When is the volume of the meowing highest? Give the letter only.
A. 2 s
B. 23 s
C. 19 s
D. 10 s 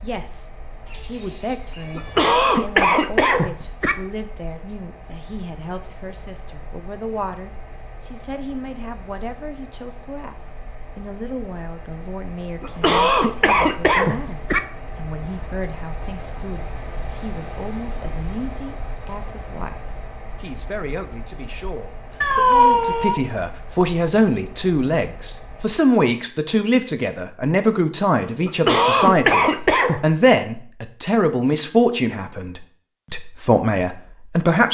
B.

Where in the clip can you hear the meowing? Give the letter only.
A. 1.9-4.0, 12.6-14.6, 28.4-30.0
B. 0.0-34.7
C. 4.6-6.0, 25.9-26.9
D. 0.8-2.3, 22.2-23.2
D.